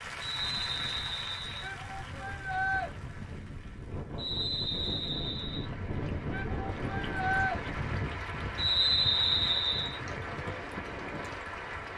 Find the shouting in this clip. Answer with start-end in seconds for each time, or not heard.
1.6-2.9, 6.3-7.6.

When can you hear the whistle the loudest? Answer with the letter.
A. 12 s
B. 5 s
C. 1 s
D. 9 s
D.